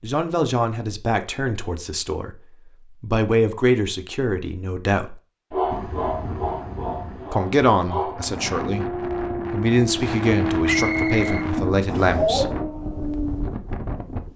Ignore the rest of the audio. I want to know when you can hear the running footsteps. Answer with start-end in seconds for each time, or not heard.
not heard.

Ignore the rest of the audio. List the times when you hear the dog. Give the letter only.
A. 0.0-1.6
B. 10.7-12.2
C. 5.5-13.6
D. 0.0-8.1
C.